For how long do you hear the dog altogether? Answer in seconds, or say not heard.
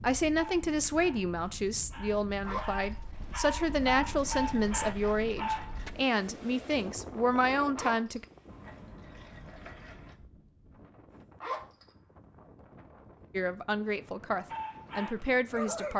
7 s.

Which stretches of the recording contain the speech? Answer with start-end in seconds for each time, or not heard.
0.0-8.2, 13.3-15.9.